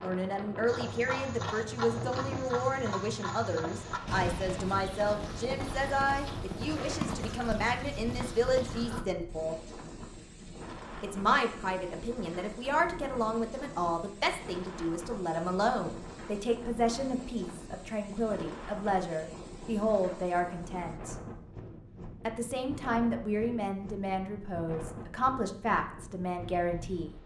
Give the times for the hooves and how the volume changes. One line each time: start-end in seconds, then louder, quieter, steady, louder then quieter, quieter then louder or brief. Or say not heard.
0.7-9.1 steady.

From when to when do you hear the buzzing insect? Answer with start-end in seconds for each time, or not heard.
not heard.